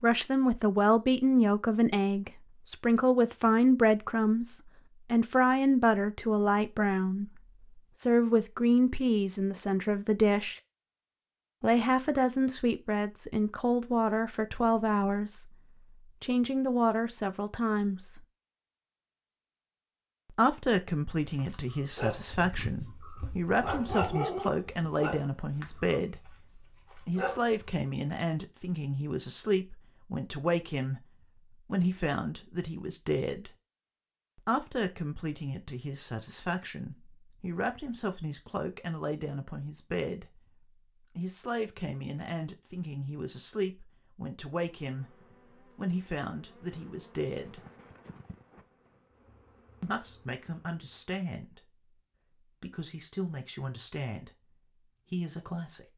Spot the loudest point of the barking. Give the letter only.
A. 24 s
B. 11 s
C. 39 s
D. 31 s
A.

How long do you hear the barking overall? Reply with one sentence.
The barking can be heard for 6 seconds in total.